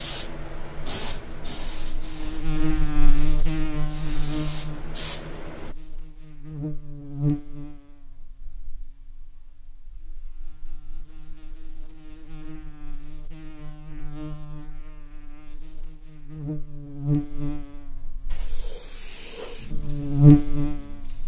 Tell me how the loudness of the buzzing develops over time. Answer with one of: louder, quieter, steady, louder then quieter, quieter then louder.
quieter then louder.